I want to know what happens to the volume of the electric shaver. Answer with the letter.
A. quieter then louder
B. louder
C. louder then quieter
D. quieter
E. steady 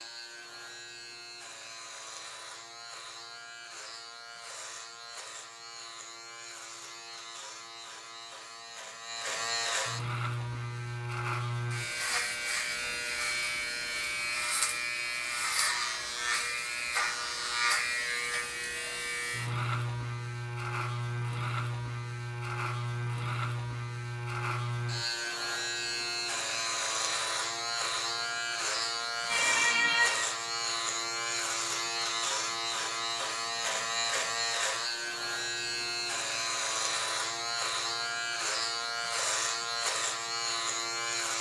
B.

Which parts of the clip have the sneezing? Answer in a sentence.
The sneezing can be heard from 29.2 to 30.2 s.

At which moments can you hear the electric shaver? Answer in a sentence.
The electric shaver can be heard from 0.0 to 41.3 s.